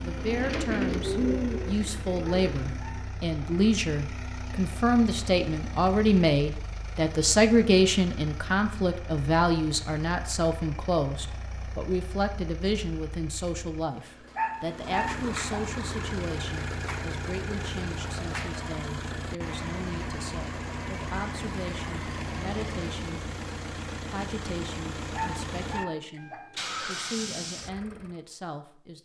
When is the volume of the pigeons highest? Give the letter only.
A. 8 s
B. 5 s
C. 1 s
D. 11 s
C.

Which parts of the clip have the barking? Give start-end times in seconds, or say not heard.
2.2-3.5, 14.3-15.6, 25.1-26.4.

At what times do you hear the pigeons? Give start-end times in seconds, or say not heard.
0.0-2.9.